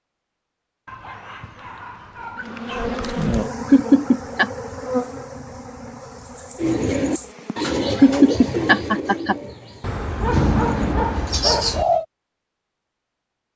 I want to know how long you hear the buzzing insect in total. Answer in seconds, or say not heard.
5 s.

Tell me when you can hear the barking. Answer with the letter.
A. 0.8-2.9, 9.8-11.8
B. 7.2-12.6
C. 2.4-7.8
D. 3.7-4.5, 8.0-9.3
A.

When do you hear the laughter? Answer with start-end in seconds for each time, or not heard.
3.7-4.5, 8.0-9.3.